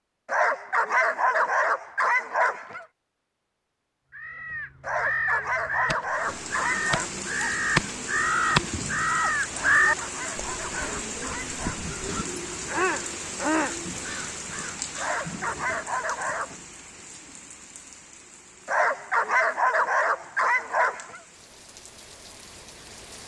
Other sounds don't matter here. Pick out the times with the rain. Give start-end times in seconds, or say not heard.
6.0-23.2.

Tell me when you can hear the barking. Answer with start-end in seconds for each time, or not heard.
0.2-2.9, 4.8-7.1, 9.5-11.9, 14.9-16.6, 18.6-21.2.